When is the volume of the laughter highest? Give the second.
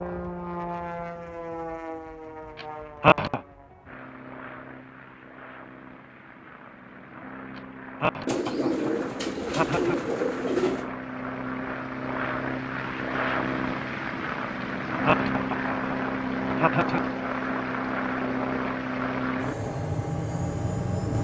3 s.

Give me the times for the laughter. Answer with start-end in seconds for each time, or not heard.
2.6-3.4, 7.5-10.1, 14.6-17.0.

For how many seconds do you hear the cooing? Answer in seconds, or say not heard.
3 s.